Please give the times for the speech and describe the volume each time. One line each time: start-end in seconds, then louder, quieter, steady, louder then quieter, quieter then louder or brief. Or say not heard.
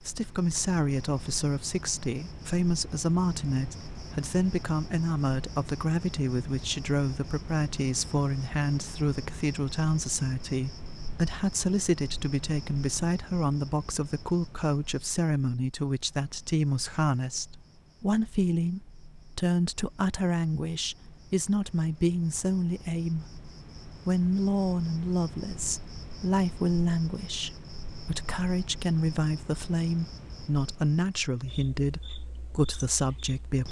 0.1-33.6 steady.